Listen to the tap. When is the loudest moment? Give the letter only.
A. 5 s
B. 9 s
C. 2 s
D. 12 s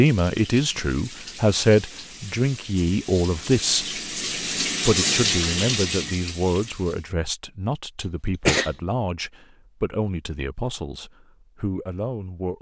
A.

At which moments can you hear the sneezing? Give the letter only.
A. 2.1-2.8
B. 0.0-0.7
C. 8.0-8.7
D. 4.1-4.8
C.